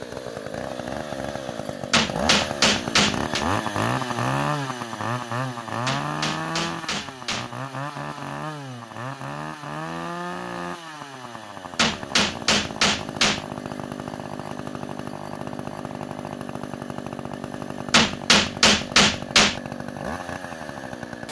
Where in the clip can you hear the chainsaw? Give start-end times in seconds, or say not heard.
0.0-21.2.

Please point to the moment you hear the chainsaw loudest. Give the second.
4 s.